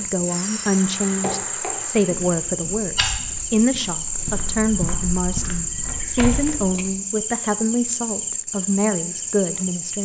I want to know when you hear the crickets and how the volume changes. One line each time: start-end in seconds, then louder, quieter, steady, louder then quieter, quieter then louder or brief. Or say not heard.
0.0-9.9 steady.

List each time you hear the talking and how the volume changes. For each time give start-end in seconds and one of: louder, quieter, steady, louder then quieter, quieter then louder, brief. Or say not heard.
0.0-9.9 steady.